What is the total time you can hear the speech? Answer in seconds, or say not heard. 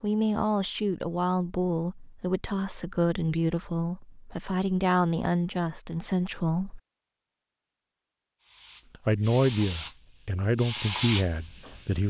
10 s.